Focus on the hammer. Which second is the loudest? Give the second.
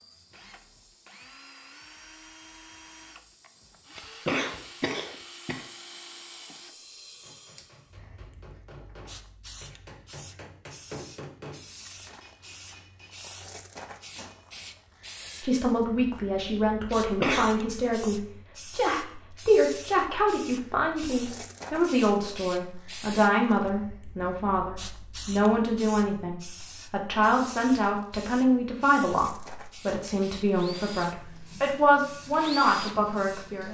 11 s.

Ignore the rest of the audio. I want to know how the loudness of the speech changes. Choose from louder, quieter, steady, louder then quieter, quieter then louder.
steady.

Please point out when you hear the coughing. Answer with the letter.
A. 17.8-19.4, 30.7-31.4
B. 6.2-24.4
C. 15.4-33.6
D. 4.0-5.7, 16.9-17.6
D.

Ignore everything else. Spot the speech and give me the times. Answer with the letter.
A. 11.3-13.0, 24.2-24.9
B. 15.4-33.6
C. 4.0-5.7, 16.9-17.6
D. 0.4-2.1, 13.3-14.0
B.